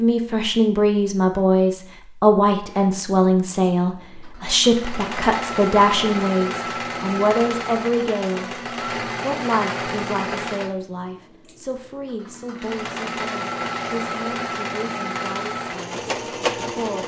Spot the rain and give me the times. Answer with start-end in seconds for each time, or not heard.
not heard.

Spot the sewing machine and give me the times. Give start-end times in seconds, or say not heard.
2.7-17.0.